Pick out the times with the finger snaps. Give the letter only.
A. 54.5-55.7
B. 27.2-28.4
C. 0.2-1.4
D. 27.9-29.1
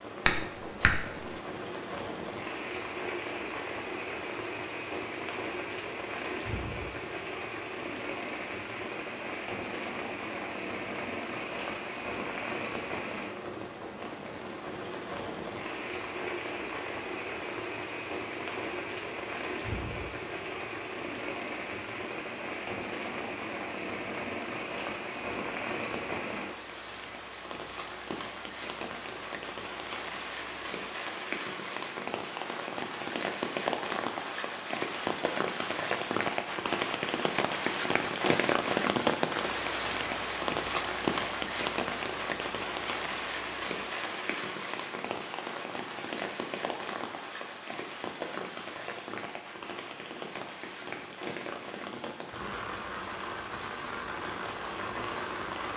C.